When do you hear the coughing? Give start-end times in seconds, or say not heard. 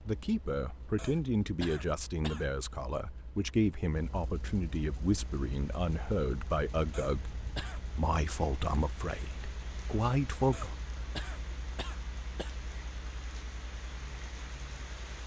0.9-2.5, 6.9-7.8, 10.5-12.5.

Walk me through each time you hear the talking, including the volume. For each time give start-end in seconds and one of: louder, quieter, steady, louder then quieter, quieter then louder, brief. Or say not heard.
0.0-10.8 steady.